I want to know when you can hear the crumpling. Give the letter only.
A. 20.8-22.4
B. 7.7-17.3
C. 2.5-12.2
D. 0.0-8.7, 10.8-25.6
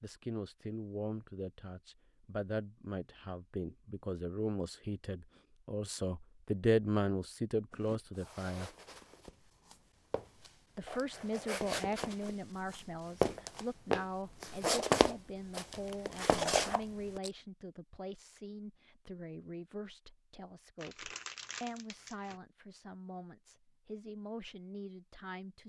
A.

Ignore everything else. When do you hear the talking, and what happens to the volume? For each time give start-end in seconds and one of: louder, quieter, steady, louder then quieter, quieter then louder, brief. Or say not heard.
0.0-8.7 louder
10.8-25.6 quieter.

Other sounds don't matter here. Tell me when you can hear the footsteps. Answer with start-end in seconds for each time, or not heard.
7.7-17.3.